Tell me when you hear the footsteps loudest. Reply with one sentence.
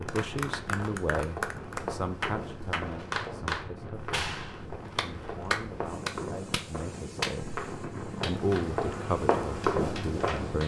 The loudest moment of the footsteps is at 10 seconds.